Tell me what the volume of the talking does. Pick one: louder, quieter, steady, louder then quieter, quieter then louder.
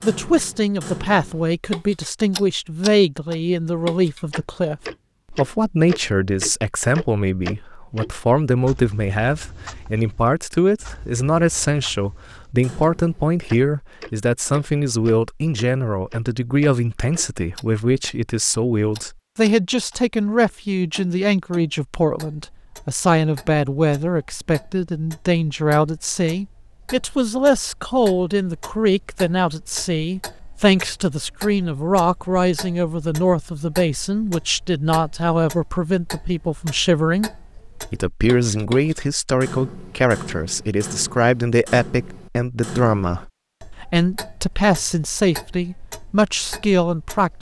steady.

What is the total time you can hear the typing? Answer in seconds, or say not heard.
not heard.